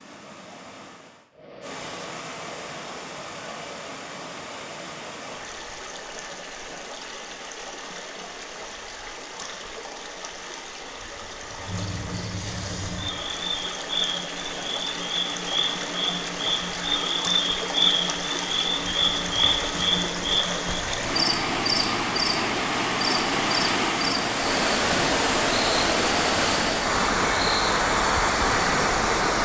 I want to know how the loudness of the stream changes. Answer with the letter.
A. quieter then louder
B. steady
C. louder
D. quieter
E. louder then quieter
C.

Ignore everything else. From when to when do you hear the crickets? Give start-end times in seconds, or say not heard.
11.6-29.4.